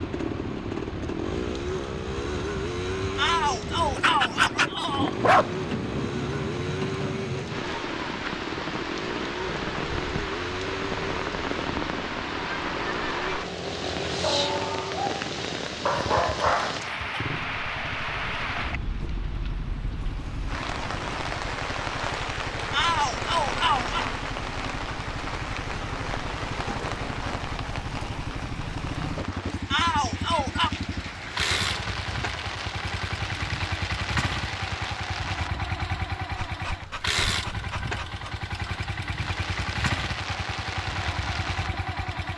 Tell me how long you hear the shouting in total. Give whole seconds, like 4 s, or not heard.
4 s.